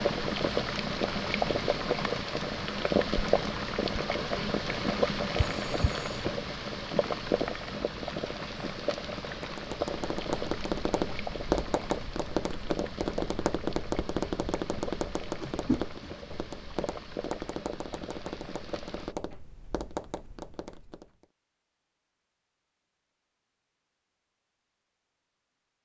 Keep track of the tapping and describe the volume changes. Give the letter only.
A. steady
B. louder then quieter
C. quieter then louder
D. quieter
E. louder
D.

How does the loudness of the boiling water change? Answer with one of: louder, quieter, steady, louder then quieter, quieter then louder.
quieter.